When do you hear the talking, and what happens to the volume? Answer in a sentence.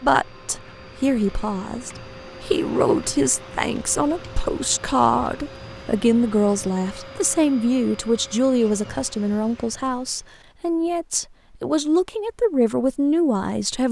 The talking can be heard from 0.0 to 13.8 s, at a steady volume.